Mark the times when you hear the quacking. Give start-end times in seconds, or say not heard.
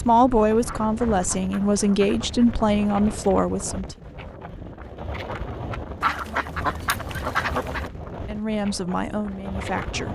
0.7-2.5, 6.0-7.9.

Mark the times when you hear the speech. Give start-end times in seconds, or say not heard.
0.0-4.0, 8.2-10.0.